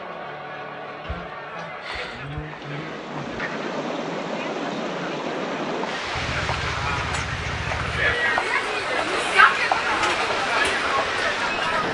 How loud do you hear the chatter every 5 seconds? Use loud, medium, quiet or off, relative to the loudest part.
quiet, loud, loud.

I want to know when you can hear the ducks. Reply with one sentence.
The ducks can be heard from 1.1 to 3.6 s and from 6.2 to 8.2 s.